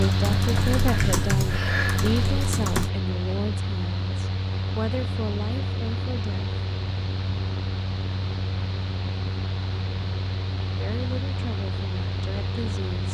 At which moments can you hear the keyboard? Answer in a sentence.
You can hear the keyboard from 0.1 to 2.9 s.